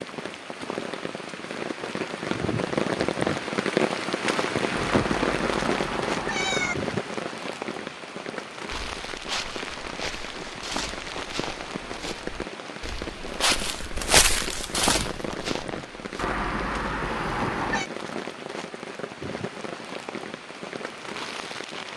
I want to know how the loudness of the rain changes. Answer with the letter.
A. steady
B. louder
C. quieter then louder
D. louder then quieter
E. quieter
E.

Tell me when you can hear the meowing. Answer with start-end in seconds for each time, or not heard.
4.8-6.8, 16.1-17.9.